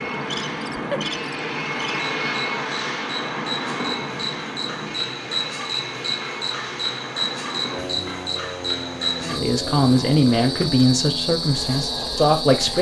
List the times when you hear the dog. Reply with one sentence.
You can't hear the dog here.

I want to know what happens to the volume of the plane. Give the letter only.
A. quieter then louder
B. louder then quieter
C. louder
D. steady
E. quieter
E.